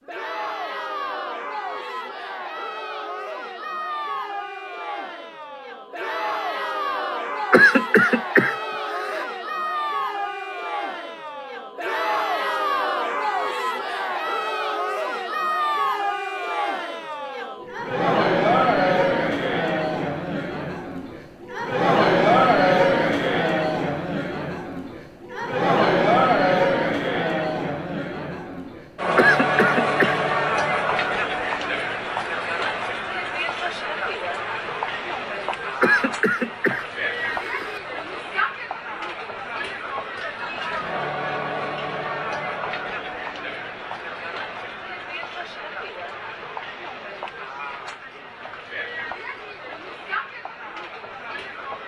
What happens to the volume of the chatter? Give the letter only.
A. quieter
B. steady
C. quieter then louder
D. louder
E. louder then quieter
E.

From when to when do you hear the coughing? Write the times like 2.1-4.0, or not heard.
7.5-9.2, 29.1-30.2, 35.8-37.8.